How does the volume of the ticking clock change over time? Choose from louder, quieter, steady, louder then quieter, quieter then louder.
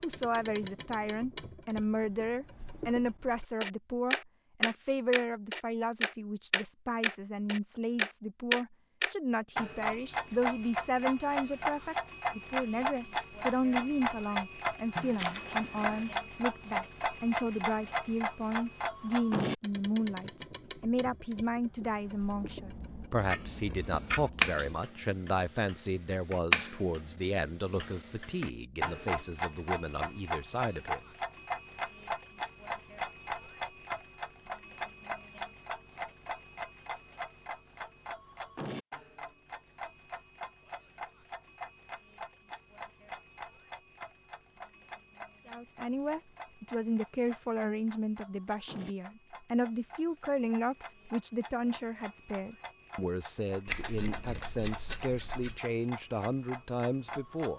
quieter.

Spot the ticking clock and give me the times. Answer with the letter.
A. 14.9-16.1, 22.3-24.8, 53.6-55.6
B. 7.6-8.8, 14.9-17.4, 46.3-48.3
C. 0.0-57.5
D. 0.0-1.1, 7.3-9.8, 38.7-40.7
C.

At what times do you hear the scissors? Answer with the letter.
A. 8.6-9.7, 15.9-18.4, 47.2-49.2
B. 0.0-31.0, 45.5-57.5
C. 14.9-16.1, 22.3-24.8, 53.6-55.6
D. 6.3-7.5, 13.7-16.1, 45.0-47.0
C.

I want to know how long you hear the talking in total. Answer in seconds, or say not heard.
43 s.